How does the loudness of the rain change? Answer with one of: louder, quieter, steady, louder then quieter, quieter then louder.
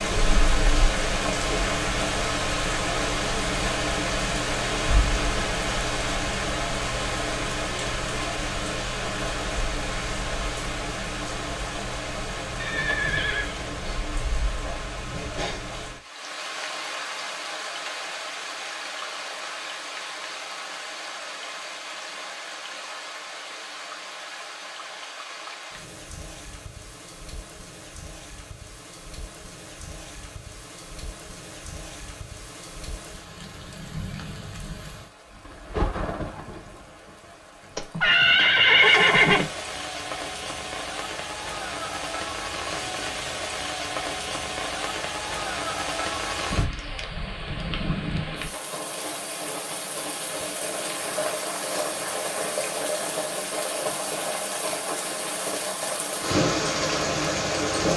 quieter then louder.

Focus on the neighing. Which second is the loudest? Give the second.
39 s.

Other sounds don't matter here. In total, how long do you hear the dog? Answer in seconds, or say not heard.
not heard.